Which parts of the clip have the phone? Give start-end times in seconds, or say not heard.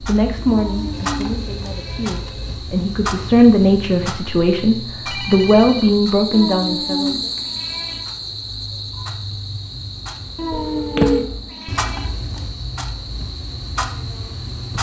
0.9-2.6, 5.0-6.0, 10.5-11.2.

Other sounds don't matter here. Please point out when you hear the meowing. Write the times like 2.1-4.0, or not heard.
0.5-2.2, 6.3-8.0, 10.3-12.1.